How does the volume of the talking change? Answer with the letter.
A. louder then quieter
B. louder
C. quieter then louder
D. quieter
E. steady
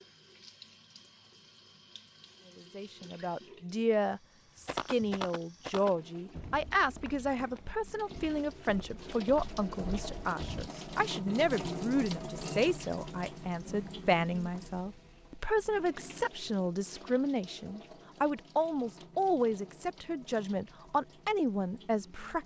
E.